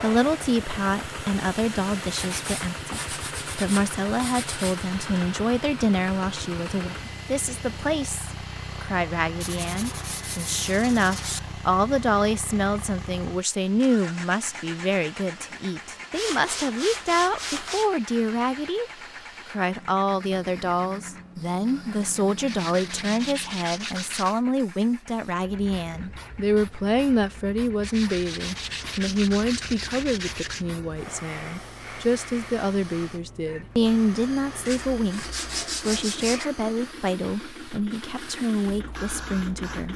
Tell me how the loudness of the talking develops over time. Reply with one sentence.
The loudness of the talking stays about the same.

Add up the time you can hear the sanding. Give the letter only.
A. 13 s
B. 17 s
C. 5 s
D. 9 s
A.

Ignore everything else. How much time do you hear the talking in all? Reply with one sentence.
The talking can be heard for 40 seconds in total.